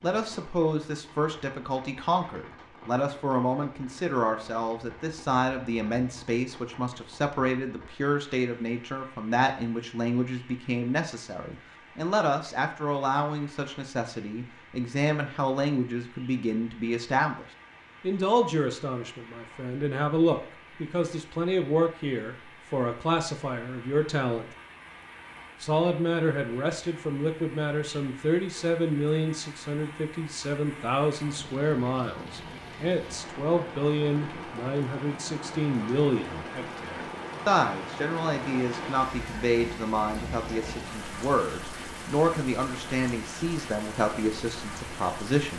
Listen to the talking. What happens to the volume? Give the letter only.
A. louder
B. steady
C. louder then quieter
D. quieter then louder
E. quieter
B.